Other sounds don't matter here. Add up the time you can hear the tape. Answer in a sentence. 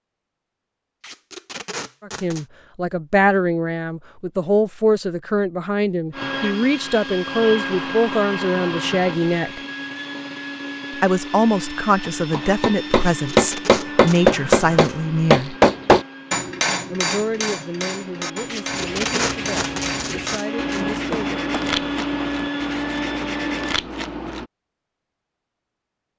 You can hear the tape for 6 seconds altogether.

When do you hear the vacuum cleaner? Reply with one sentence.
The vacuum cleaner can be heard from 6.1 to 23.8 s.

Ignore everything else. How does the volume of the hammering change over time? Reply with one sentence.
The loudness of the hammering goes down.